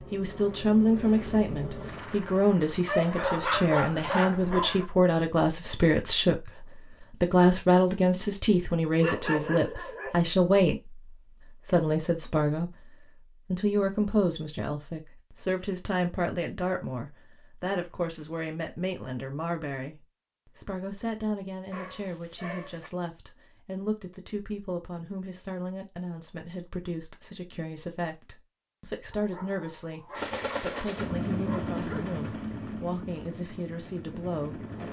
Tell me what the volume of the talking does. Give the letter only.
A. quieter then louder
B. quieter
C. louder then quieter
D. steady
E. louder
B.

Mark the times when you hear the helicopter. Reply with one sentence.
You can hear the helicopter from 0.0 to 4.8 s and from 30.1 to 34.8 s.